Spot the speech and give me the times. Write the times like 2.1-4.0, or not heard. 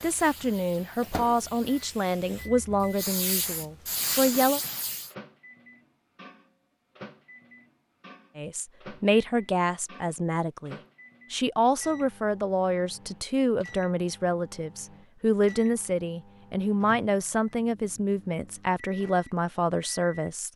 0.0-4.6, 8.3-20.5.